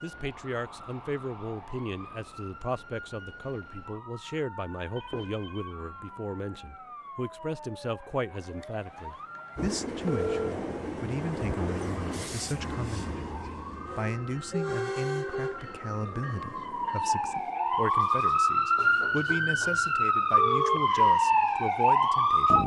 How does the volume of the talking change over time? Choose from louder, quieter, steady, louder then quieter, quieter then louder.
steady.